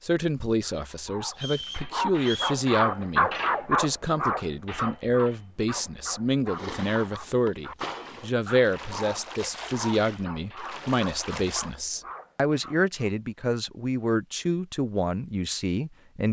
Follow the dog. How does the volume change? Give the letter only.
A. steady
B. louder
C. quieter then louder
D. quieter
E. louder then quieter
D.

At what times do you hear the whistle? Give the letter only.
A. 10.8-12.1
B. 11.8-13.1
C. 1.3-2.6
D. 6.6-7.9
C.